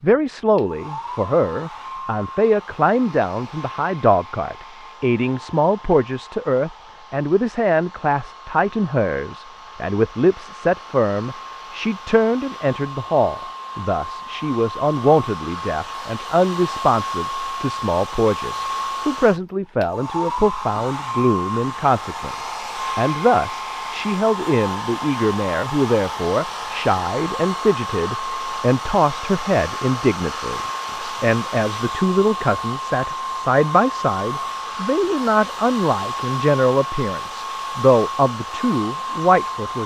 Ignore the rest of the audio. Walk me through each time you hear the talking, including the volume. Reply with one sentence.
The talking can be heard from 0.0 to 39.8 s, at a steady volume.